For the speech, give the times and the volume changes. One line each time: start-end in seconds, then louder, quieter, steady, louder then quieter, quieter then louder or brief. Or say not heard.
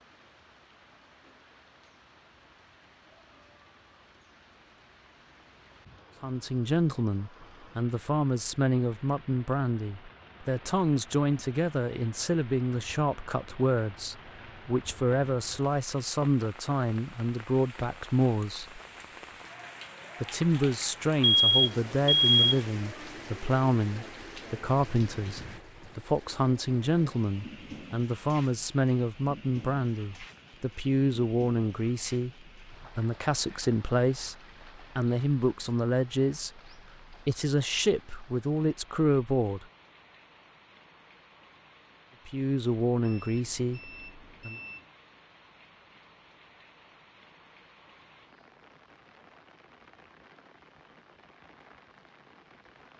6.2-18.8 steady
20.2-39.6 steady
42.2-44.5 brief.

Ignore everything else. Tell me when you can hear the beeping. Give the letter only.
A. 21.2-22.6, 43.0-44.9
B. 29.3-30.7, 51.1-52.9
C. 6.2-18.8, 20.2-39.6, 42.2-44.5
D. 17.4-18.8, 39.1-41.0
A.